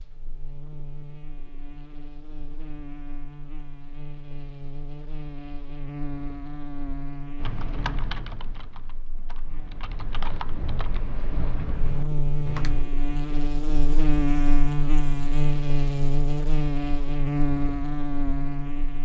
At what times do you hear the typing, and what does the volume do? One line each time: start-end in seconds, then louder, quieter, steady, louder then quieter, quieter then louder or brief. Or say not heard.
7.3-12.8 quieter then louder.